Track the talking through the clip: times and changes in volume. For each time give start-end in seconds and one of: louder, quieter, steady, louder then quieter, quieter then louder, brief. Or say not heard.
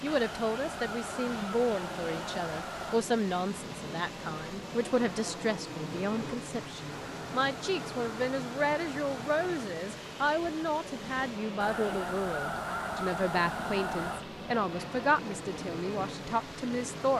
0.0-17.1 steady.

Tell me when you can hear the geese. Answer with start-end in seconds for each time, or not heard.
0.1-3.0, 6.9-9.7, 11.6-14.2.